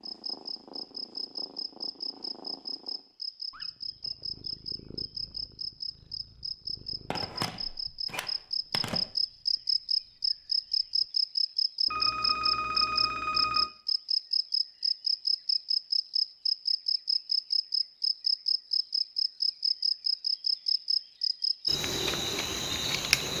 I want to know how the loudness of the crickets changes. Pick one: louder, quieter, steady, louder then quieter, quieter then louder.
louder.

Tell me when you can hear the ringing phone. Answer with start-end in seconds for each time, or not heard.
7.1-9.1, 11.8-13.7.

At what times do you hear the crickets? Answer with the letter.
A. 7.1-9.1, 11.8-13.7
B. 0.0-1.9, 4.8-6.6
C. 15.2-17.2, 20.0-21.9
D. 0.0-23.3
D.